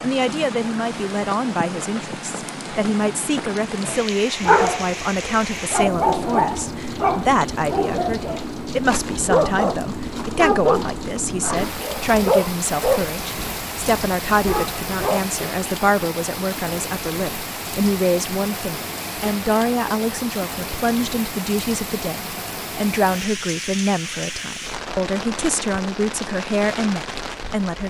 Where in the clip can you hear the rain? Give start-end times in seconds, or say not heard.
0.0-27.8.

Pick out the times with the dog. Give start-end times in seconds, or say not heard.
3.8-15.3.